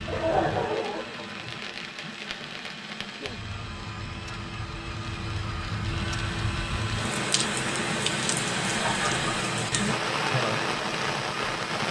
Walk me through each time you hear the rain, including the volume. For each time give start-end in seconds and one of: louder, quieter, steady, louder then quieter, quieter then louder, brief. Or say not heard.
0.0-11.8 louder.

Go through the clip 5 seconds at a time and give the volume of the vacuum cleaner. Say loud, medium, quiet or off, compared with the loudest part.
medium, loud, loud.